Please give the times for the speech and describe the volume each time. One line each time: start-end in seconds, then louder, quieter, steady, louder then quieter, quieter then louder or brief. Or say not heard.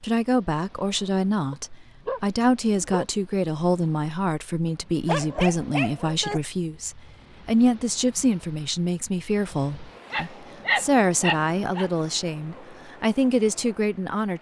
0.0-14.3 steady.